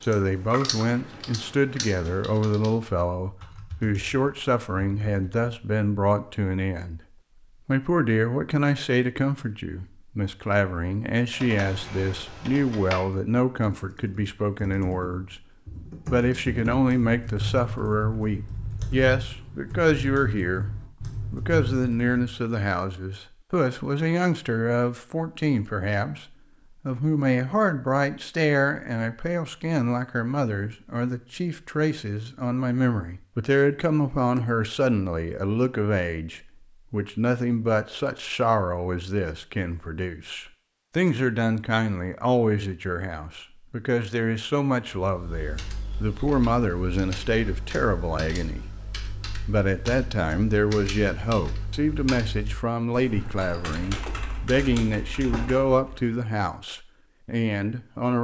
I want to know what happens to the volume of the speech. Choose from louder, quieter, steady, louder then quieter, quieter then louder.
steady.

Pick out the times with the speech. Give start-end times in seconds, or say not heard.
0.0-7.0, 7.7-15.4, 16.1-20.7, 21.3-48.8, 49.5-58.1.